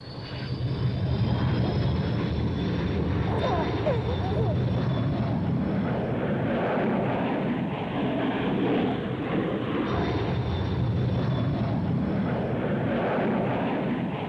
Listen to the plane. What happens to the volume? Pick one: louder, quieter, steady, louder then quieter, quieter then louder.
steady.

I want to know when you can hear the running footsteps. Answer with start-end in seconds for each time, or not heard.
not heard.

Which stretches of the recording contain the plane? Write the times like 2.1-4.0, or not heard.
0.0-14.2.